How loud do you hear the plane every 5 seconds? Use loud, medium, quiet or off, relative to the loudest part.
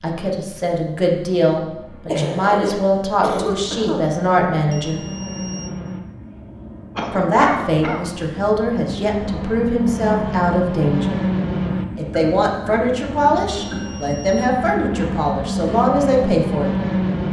quiet, medium, loud, loud.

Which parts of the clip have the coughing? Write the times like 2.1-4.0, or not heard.
2.0-4.1, 7.0-8.1, 12.1-13.8.